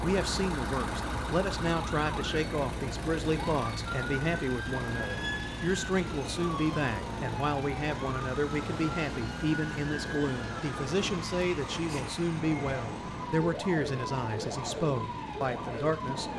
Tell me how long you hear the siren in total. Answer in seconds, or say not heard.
16 s.